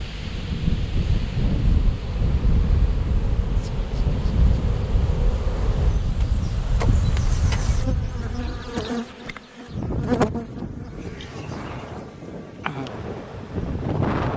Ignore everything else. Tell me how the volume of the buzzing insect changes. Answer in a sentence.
The loudness of the buzzing insect goes up, then down.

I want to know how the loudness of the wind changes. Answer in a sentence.
The volume of the wind goes down.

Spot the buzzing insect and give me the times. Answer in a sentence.
You can hear the buzzing insect from 0.0 to 14.3 s.